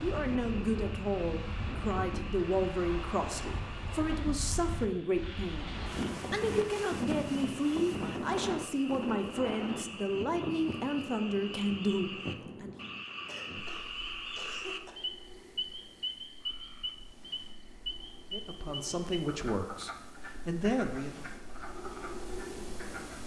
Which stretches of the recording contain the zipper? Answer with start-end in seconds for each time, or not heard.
not heard.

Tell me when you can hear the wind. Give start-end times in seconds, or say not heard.
0.0-23.2.